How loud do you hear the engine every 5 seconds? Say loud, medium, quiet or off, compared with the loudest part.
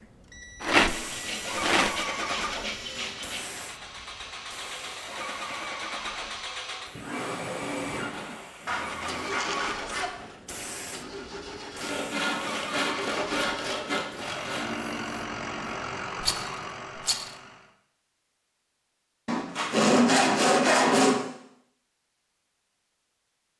medium, loud, loud, loud, off.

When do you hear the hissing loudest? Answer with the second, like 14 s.
2 s.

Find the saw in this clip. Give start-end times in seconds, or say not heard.
0.8-3.5, 8.7-10.1, 11.8-14.7, 19.2-21.2.